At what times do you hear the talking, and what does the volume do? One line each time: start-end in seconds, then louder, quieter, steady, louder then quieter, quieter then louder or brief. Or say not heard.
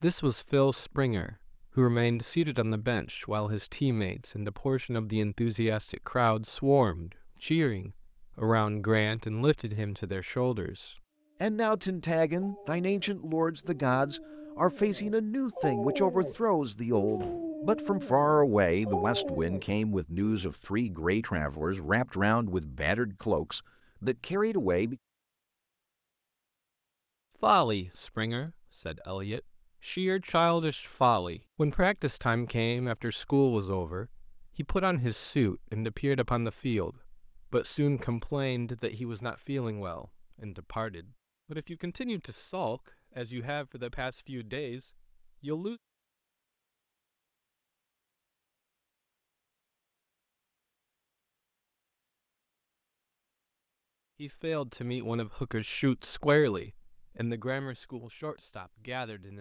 0.0-24.9 steady
27.4-45.8 quieter
54.1-59.3 louder then quieter.